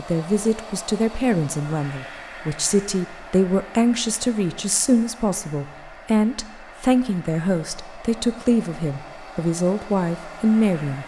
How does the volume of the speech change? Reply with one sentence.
The loudness of the speech stays about the same.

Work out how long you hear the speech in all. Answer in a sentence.
The speech can be heard for 11 seconds in total.